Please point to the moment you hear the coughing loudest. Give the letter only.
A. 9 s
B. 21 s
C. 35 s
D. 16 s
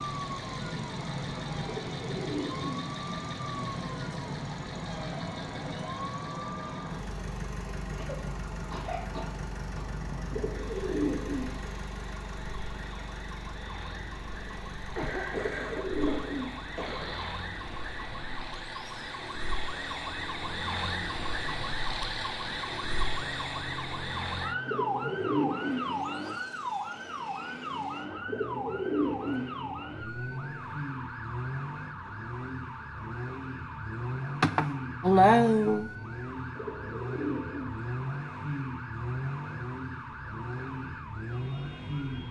C.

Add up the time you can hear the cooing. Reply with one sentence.
The cooing can be heard for 7 seconds in total.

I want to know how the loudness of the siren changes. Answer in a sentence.
The volume of the siren goes up, then down.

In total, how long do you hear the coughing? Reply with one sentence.
You can hear the coughing for 6 seconds altogether.